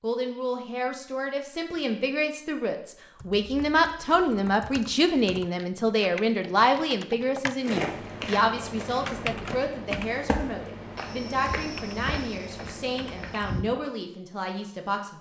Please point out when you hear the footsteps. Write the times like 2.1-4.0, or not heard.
7.6-13.7.